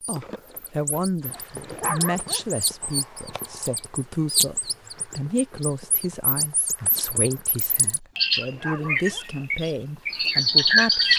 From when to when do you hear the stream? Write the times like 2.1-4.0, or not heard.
not heard.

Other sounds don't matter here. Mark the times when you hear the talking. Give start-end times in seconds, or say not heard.
0.1-11.1.